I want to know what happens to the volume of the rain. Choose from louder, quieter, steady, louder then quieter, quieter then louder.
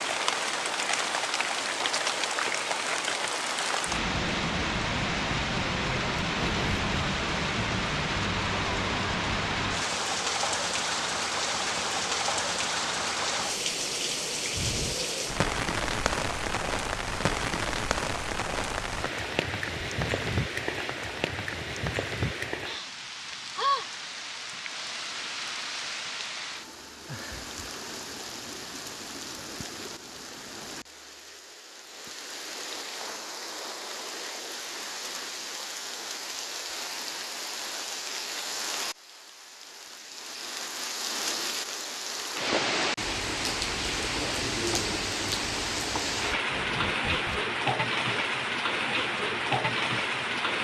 quieter then louder.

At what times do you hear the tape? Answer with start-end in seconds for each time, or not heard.
6.2-7.0, 20.0-20.6, 46.4-47.5.